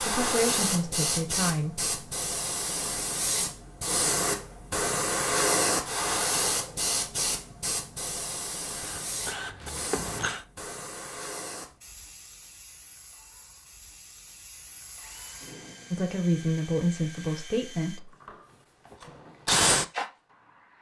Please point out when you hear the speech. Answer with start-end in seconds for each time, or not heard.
0.0-1.9, 15.9-18.1.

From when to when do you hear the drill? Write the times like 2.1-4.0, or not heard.
8.7-10.4, 14.9-20.7.